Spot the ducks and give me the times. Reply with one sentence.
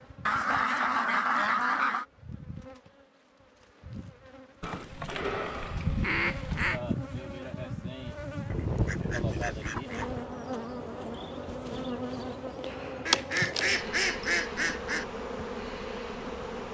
You can hear the ducks from 0.2 to 2.0 s, from 4.6 to 6.8 s, from 8.4 to 10.2 s and from 13.1 to 15.1 s.